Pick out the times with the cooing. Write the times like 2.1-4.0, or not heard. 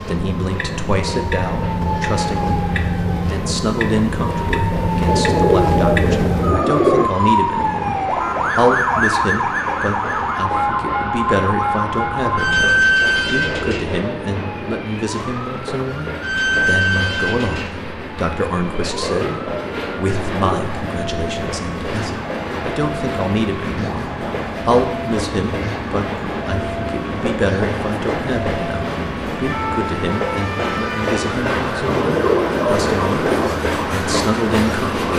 5.0-7.1, 13.2-14.8, 18.8-20.7, 31.9-33.5.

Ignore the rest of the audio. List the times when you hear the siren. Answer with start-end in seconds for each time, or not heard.
0.0-35.1.